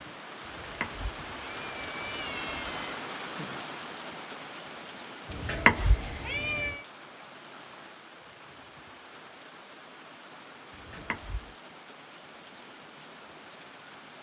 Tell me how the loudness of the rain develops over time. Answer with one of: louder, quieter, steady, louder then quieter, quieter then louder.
quieter.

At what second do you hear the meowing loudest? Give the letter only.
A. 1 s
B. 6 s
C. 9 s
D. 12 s
B.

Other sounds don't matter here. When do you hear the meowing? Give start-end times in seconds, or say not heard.
0.5-3.0, 5.3-6.8, 10.7-11.6.